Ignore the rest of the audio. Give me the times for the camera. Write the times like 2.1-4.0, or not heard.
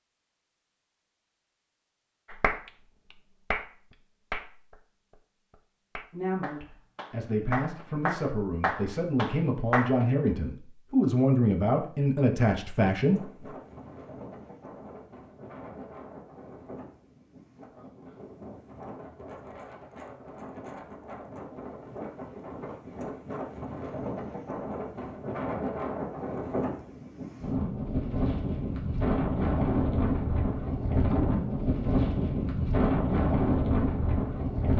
not heard.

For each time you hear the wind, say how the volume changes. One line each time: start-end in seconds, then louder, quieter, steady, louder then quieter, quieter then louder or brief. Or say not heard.
12.9-34.7 louder.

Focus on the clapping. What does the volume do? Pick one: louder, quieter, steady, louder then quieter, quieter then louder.
quieter then louder.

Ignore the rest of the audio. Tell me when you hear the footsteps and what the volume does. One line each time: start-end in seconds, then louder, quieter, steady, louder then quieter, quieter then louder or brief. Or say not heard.
not heard.